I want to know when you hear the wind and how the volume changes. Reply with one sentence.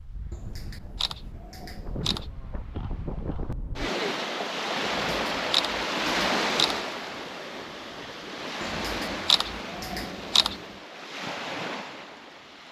The wind can be heard from 0.0 to 12.6 s, getting louder then quieter.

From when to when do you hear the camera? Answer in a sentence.
You can hear the camera from 0.3 to 2.3 s, from 5.0 to 6.8 s and from 8.6 to 10.6 s.